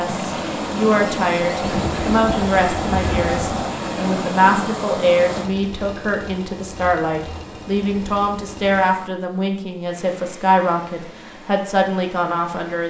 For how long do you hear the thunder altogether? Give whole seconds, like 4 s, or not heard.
2 s.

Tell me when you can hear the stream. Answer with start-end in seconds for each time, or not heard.
0.0-12.8.